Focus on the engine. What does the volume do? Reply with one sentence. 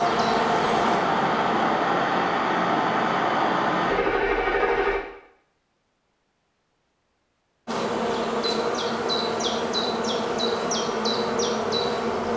The loudness of the engine stays about the same.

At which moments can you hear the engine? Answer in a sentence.
The engine can be heard from 0.0 to 5.0 s.